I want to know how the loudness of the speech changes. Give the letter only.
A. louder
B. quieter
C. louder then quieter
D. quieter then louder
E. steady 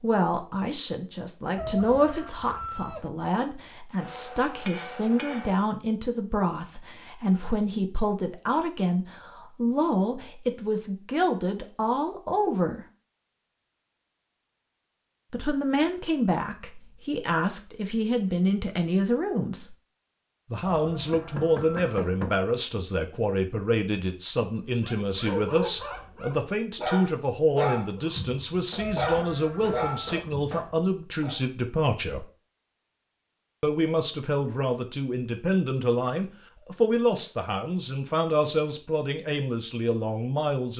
E.